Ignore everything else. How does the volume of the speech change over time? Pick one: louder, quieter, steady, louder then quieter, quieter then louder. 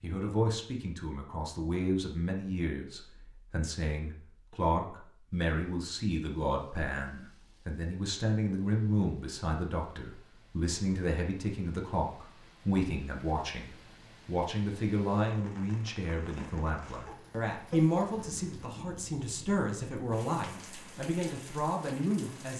steady.